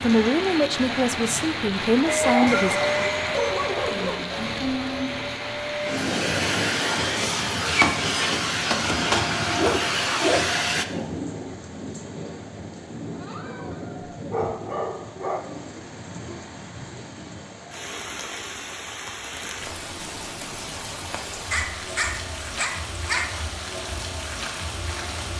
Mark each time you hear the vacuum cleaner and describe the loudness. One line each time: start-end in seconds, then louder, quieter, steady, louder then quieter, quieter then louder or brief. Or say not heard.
2.0-10.8 quieter then louder.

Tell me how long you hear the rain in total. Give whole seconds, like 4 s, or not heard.
25 s.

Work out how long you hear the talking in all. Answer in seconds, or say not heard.
3 s.